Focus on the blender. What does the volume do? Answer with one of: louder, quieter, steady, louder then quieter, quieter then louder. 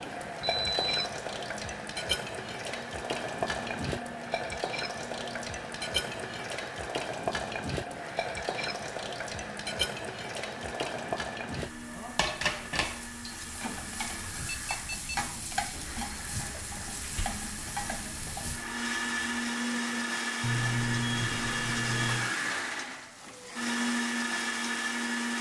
louder.